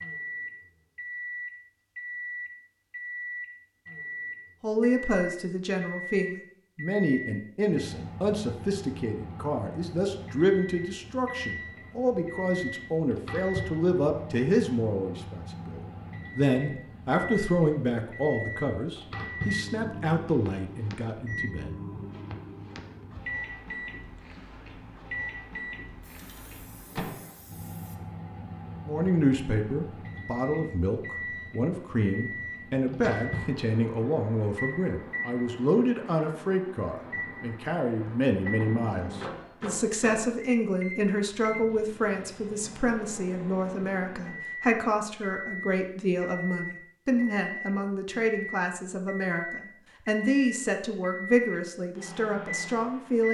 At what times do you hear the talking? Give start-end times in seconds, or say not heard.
4.6-21.8, 28.9-53.2.